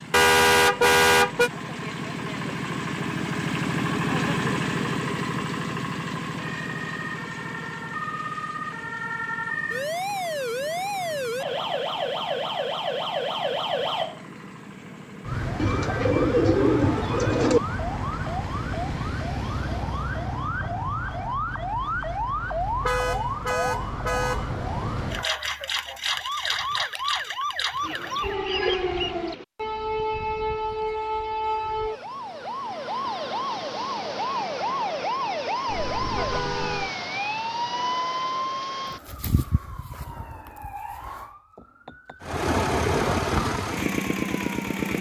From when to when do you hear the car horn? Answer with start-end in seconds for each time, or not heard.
0.1-1.5, 22.6-24.6, 35.6-36.9.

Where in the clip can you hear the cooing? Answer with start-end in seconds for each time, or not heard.
15.6-17.6, 27.8-29.4.